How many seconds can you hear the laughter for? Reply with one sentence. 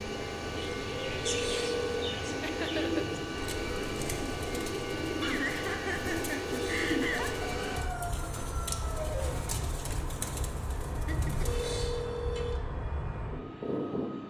The laughter can be heard for 3 seconds in total.